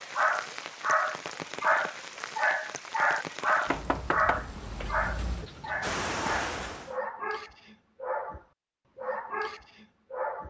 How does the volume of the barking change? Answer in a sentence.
The volume of the barking goes down.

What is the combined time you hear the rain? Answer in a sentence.
You can hear the rain for 7 seconds altogether.